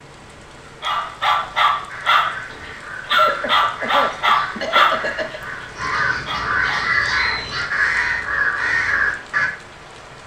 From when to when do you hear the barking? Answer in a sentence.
The barking can be heard from 0.6 to 2.4 s and from 3.0 to 6.8 s.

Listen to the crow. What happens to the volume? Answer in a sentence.
The loudness of the crow goes up.